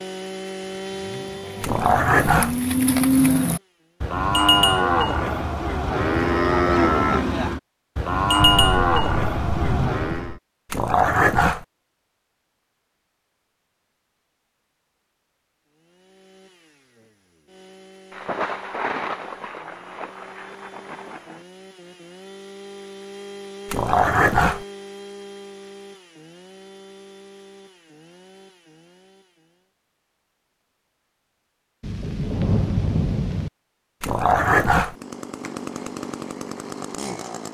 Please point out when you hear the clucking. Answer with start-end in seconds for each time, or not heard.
not heard.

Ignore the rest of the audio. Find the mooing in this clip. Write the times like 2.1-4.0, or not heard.
0.8-10.3.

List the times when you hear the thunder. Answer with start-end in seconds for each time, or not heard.
8.3-10.4, 18.1-21.4, 31.8-33.5.